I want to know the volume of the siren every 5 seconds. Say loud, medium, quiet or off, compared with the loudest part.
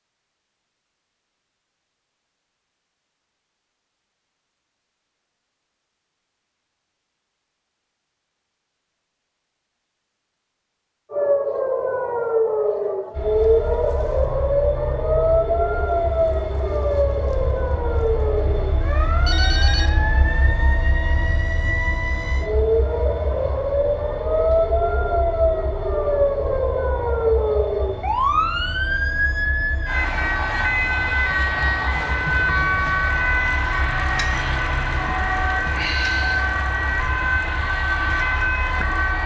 off, off, loud, loud, loud, loud, loud, loud.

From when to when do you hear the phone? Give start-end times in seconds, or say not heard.
19.2-19.9.